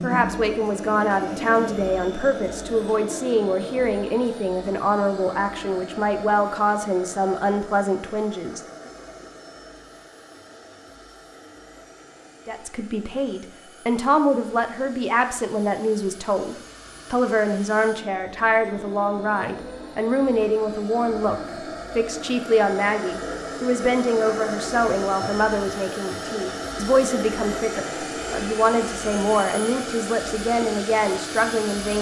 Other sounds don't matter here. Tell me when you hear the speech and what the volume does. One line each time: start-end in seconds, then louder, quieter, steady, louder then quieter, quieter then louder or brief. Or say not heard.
0.0-8.9 steady
12.4-31.9 steady.